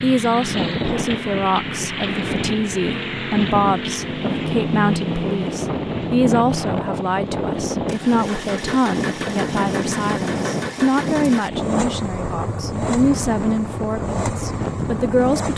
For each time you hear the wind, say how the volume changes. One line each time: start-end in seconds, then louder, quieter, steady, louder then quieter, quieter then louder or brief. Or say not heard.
0.0-15.5 steady.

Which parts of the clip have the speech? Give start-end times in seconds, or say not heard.
0.0-15.5.